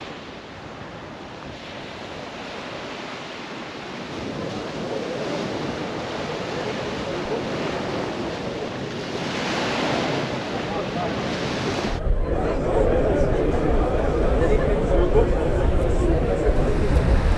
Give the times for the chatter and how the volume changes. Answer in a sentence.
The chatter can be heard from 4.1 to 17.3 s, getting louder.